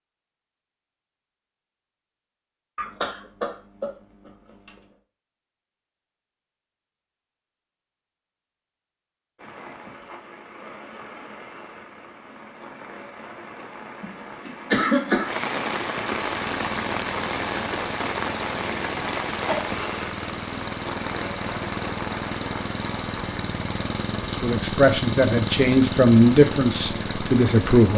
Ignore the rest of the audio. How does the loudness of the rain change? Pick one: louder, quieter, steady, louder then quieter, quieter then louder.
louder then quieter.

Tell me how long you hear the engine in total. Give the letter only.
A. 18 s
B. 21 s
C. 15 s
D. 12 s
D.